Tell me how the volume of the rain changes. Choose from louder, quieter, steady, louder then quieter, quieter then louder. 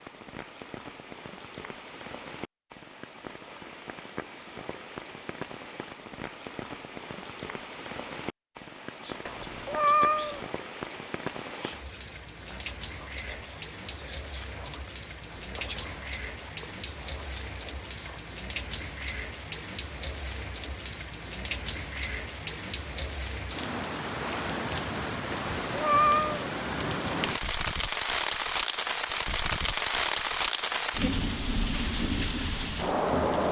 louder.